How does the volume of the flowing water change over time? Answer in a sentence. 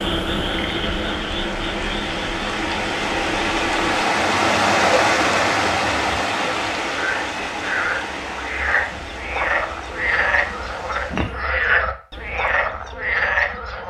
The loudness of the flowing water goes up, then down.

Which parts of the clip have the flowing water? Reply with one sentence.
The flowing water can be heard from 0.0 to 11.3 s.